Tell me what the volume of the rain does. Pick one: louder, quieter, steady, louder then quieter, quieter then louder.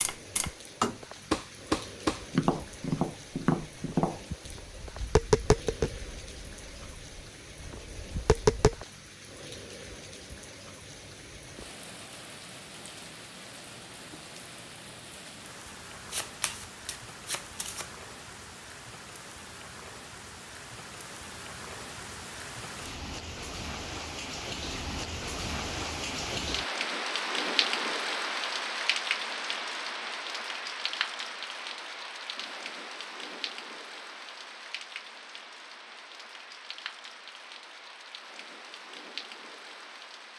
louder then quieter.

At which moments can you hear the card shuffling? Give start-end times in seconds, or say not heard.
15.9-17.9.